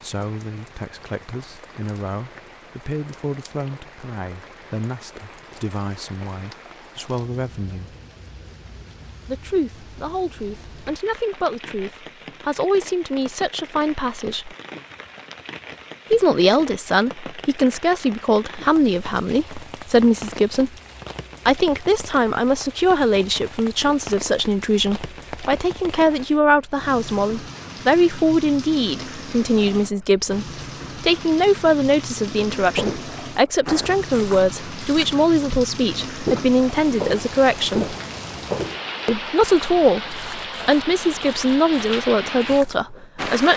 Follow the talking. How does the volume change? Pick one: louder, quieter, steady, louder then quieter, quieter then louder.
louder.